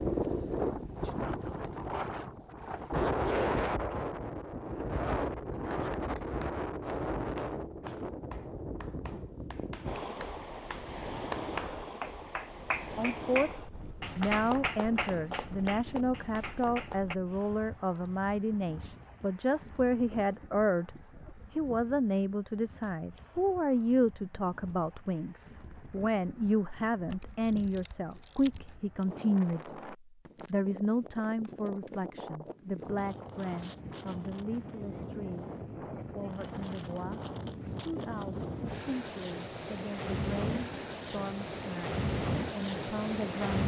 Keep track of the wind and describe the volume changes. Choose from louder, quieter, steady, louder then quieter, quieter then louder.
quieter then louder.